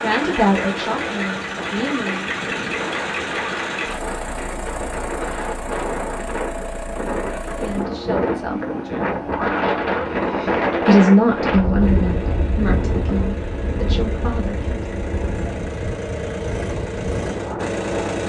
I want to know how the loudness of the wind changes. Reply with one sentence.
The loudness of the wind goes up, then down.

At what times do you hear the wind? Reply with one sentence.
The wind can be heard from 0.0 to 18.2 s.